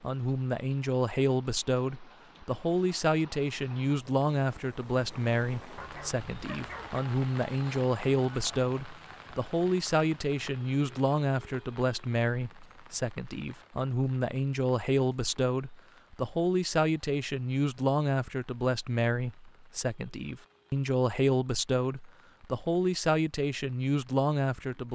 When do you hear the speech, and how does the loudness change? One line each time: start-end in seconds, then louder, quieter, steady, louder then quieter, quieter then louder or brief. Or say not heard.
0.0-24.9 steady.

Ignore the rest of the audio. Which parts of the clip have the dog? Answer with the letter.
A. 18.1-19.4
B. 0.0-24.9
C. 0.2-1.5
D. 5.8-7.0
D.